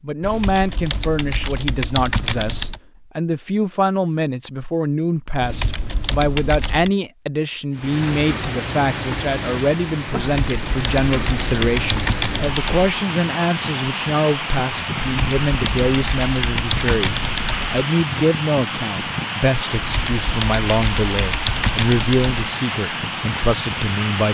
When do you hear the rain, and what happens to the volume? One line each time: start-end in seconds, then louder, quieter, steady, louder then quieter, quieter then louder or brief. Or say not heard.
7.7-24.2 steady.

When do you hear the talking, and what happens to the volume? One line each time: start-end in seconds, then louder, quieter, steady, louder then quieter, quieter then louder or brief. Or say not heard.
0.0-24.2 steady.